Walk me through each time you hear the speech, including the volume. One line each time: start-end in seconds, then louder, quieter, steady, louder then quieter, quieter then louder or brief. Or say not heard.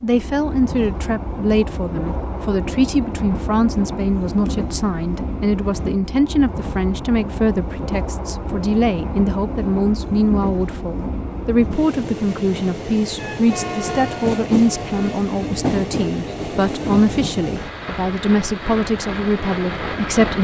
0.0-20.3 steady.